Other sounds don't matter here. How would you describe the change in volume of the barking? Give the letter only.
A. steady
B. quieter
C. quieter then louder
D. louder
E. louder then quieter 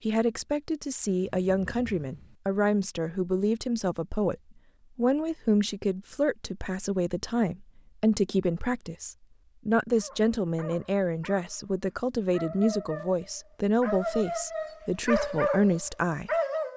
D.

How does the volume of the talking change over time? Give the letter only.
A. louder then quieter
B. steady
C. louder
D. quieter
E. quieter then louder
B.